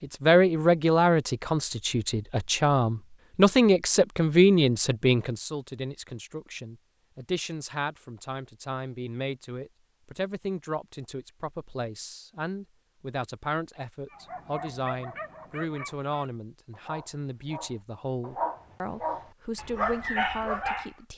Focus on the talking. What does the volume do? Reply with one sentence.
The loudness of the talking goes down.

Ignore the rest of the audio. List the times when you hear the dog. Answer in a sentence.
You can hear the dog from 14.1 to 20.9 s.